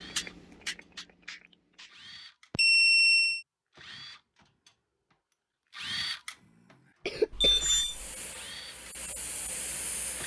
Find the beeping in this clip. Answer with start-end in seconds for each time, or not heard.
2.5-3.5, 7.3-8.1.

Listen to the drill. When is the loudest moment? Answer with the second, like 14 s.
6 s.